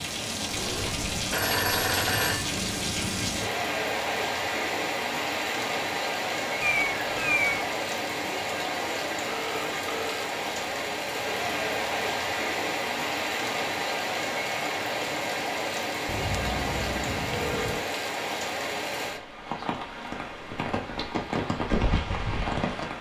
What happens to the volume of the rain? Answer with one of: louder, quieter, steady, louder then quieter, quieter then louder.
steady.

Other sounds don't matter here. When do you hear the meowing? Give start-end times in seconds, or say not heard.
6.6-7.8.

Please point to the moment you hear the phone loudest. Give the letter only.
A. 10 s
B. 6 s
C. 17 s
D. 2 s
D.